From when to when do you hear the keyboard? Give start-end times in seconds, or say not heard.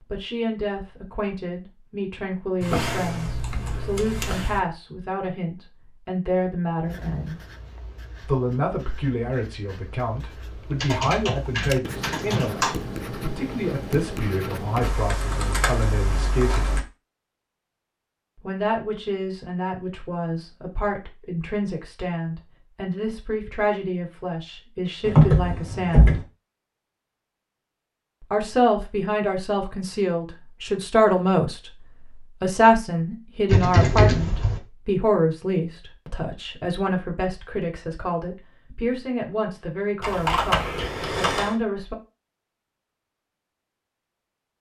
2.6-4.6, 10.8-12.8, 14.8-16.8, 25.1-26.2, 33.5-34.6, 40.0-41.5.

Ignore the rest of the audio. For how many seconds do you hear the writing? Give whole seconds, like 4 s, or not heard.
8 s.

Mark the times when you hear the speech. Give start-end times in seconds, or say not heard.
0.1-7.5, 8.2-16.8, 18.4-26.2, 28.3-42.0.